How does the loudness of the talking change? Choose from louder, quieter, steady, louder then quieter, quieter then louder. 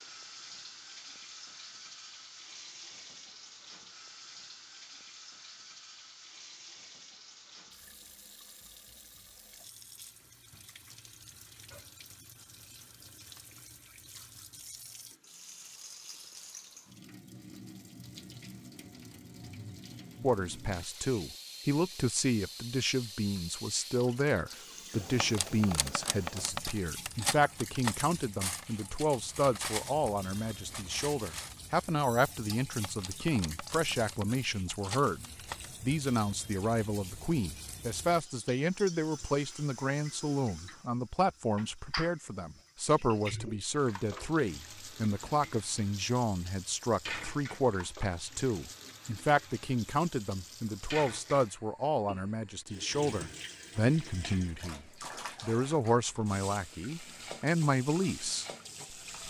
steady.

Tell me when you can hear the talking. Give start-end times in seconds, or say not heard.
20.2-59.2.